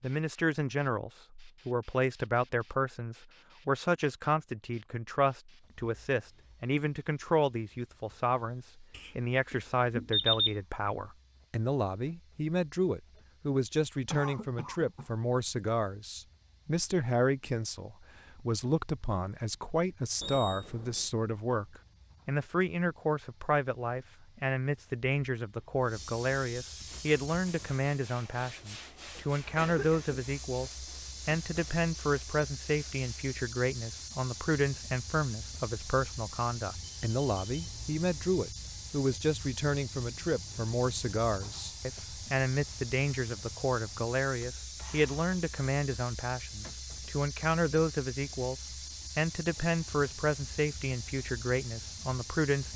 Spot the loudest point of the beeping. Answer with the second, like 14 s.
10 s.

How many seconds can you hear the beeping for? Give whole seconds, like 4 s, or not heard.
4 s.